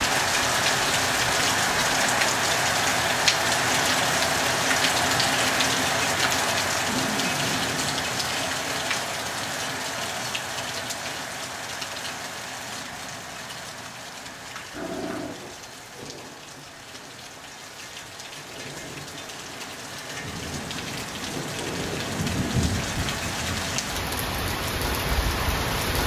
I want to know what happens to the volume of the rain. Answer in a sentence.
The volume of the rain goes down, then up.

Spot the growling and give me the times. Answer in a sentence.
The growling can be heard from 6.8 to 8.1 s and from 14.7 to 15.3 s.